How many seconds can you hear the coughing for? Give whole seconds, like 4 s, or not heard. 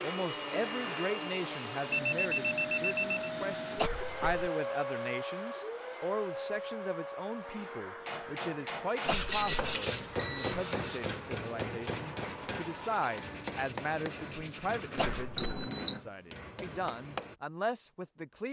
2 s.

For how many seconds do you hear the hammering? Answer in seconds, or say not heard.
9 s.